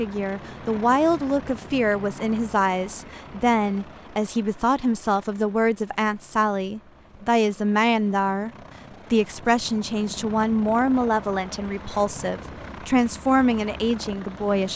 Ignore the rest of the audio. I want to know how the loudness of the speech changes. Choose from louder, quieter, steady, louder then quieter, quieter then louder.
steady.